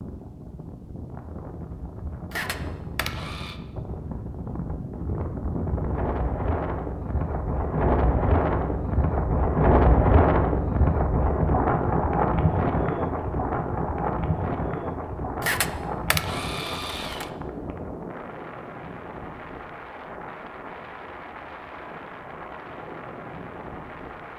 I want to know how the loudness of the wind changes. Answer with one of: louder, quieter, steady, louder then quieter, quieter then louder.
louder then quieter.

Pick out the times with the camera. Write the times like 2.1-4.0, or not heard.
2.3-3.5, 15.4-17.3.